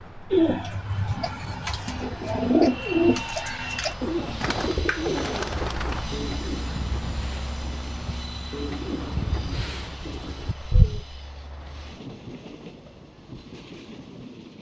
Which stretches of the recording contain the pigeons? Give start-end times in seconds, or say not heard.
0.3-11.1.